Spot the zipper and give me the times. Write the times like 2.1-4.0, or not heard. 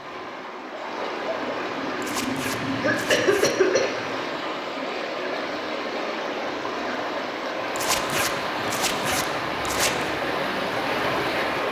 2.0-3.5, 7.8-10.1.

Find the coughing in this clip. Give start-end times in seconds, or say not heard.
2.8-3.9.